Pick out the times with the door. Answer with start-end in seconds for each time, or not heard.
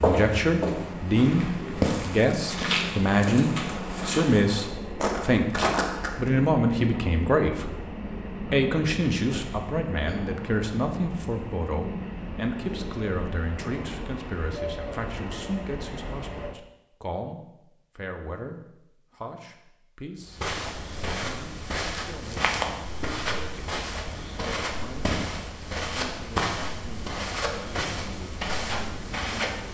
not heard.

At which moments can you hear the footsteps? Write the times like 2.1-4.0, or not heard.
0.0-6.3, 20.3-29.6.